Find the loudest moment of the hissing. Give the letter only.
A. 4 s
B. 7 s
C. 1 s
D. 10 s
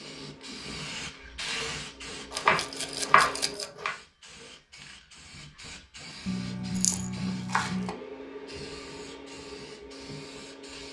C.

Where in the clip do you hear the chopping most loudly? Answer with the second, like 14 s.
3 s.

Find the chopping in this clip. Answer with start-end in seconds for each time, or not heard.
2.3-4.0, 6.2-8.0.